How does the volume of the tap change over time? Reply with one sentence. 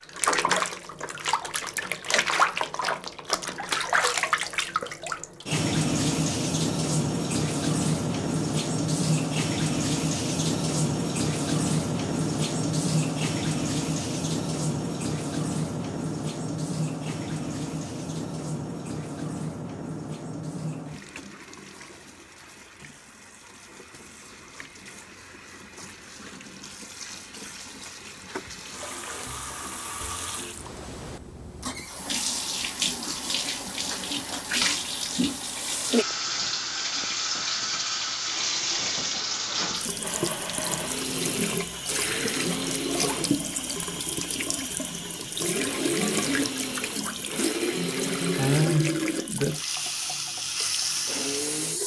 The volume of the tap goes down, then up.